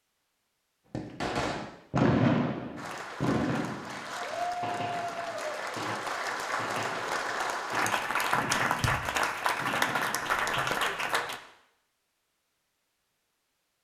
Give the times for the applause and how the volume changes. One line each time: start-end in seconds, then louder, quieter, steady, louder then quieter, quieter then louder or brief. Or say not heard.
2.8-11.4 louder.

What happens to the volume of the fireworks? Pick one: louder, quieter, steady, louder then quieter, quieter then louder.
quieter.